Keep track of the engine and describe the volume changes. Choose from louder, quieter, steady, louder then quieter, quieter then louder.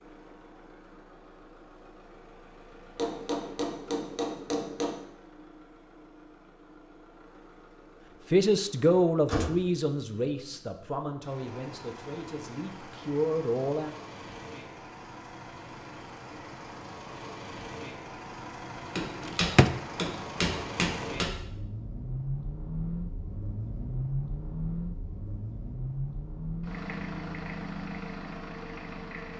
louder.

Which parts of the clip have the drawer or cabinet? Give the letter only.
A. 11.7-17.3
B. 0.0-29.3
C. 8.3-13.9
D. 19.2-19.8
D.